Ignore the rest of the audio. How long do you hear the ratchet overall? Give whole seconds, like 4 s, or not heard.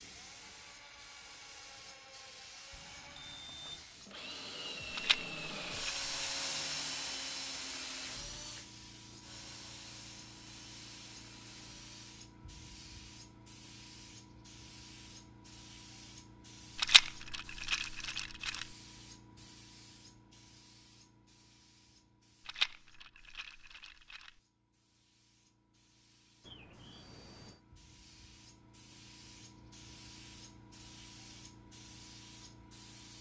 not heard.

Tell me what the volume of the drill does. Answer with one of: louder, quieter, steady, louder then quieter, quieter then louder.
louder then quieter.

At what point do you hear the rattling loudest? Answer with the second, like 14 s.
17 s.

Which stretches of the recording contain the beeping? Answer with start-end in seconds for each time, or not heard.
2.7-3.9, 26.4-27.6.